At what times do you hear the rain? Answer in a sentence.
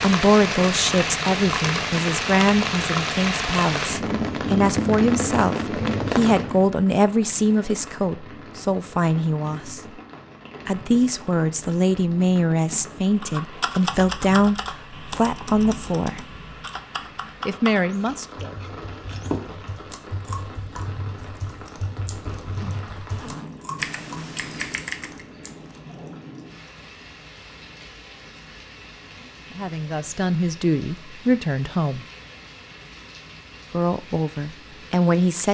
You can hear the rain from 0.0 to 35.5 s.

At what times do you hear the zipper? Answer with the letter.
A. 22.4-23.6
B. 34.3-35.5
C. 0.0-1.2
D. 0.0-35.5
A.